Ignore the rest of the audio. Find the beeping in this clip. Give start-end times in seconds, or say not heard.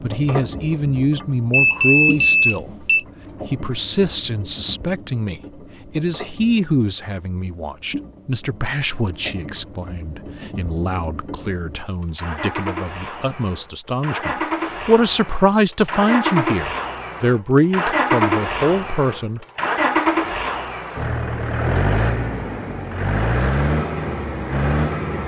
1.5-3.0.